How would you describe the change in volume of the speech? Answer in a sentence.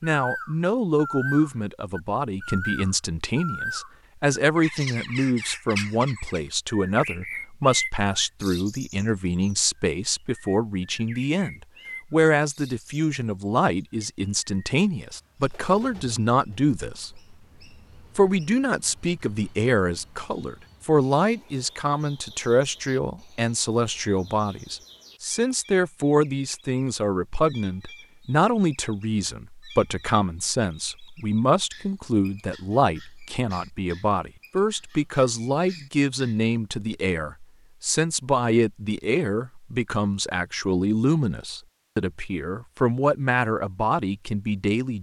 The loudness of the speech stays about the same.